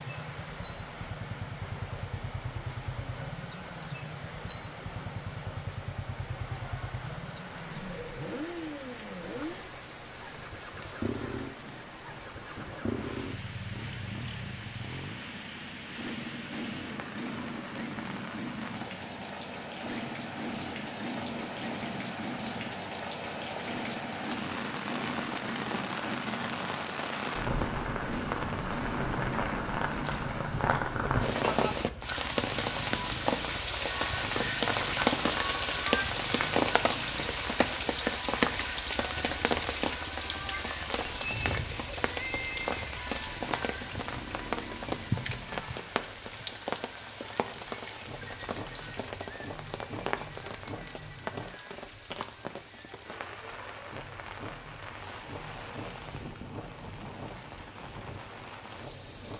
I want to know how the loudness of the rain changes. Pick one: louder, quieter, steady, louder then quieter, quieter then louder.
louder then quieter.